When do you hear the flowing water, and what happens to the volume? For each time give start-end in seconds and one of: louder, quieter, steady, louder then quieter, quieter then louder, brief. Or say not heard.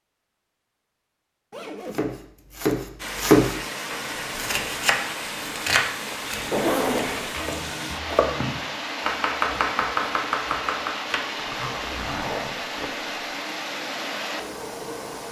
3.0-15.2 steady.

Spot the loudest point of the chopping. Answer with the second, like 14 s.
3 s.